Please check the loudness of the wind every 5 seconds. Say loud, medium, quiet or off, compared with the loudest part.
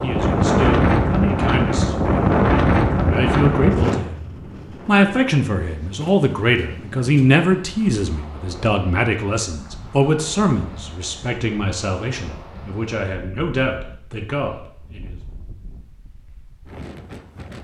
loud, quiet, quiet, quiet.